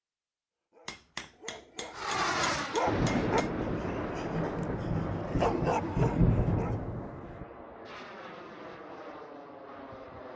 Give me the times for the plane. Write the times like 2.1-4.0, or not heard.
1.9-10.3.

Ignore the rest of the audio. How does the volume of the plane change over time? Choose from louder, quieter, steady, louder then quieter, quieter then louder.
quieter.